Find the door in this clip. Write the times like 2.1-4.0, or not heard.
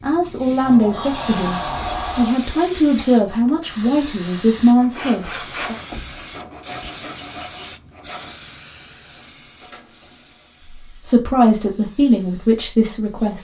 0.6-2.4, 5.8-6.9, 8.9-10.5.